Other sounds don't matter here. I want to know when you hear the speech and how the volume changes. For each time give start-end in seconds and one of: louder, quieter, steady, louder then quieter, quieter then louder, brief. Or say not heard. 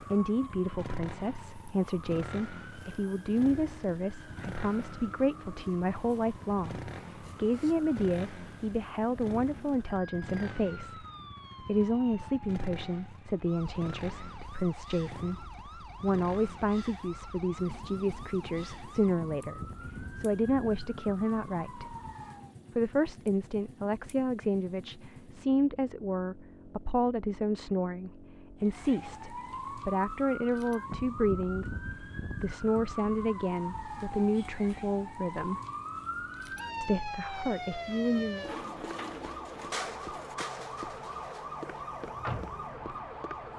0.0-21.9 steady
22.8-35.6 steady
36.8-38.5 brief.